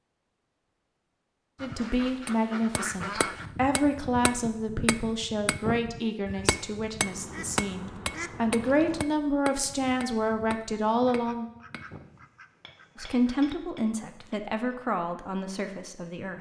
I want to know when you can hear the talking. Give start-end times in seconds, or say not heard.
1.6-11.4, 12.9-16.3.